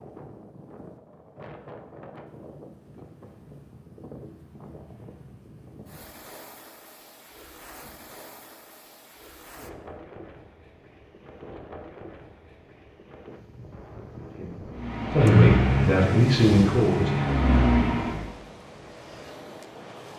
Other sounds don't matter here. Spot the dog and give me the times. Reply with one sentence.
The dog can't be heard in this clip.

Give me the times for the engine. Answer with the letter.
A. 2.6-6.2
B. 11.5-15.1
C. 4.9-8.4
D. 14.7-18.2
D.